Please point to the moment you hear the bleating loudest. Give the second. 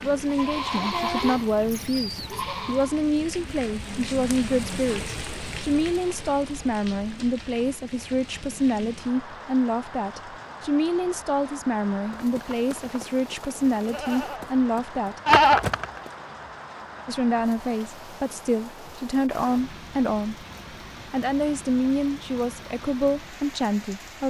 15 s.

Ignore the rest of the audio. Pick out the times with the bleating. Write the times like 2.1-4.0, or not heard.
0.0-3.0, 11.9-16.1.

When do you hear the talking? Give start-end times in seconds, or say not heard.
0.0-15.2, 17.1-20.4, 21.1-24.2.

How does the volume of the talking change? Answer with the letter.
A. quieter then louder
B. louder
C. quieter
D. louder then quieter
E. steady
E.